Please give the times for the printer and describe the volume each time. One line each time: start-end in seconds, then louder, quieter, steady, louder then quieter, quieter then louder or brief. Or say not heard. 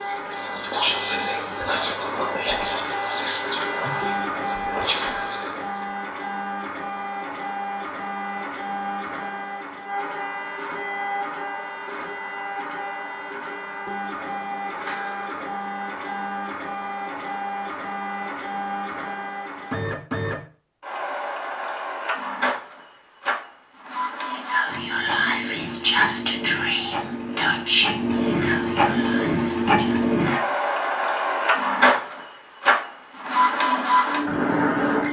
0.0-35.0 louder.